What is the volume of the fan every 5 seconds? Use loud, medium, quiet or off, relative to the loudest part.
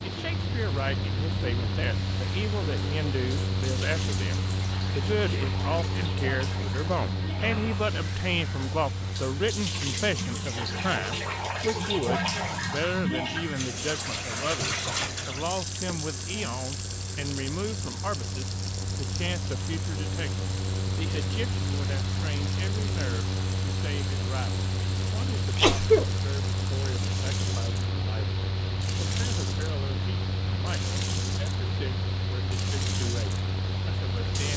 loud, loud, medium, medium, loud, loud, loud.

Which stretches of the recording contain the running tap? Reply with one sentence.
You can hear the running tap from 0.0 to 34.5 s.